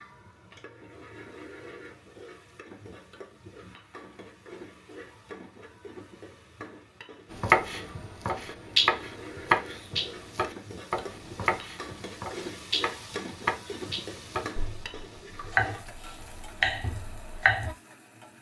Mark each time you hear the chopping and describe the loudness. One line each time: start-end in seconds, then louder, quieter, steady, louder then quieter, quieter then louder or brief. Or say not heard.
7.3-17.8 quieter then louder.